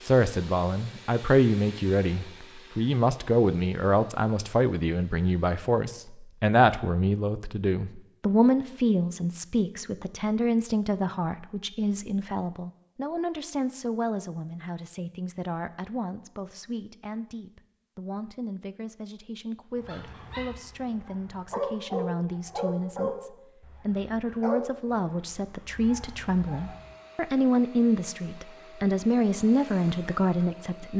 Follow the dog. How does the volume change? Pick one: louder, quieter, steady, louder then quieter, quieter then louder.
louder then quieter.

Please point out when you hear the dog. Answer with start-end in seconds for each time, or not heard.
19.8-26.9.